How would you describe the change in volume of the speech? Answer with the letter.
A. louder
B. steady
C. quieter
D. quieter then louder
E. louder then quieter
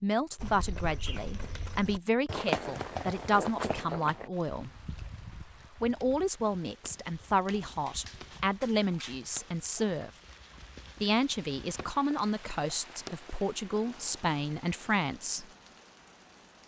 B.